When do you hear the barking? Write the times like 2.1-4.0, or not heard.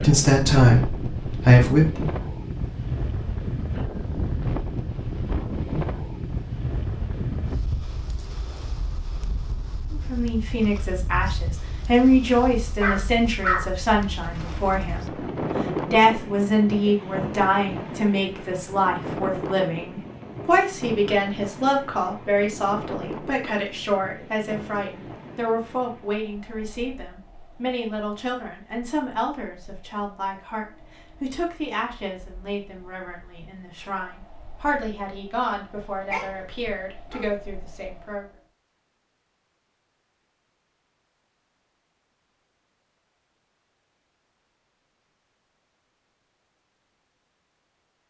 12.8-15.1, 35.8-37.2.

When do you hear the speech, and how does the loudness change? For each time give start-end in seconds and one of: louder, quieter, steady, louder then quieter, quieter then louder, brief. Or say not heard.
0.0-2.1 brief
9.9-15.1 louder then quieter
15.8-38.2 quieter.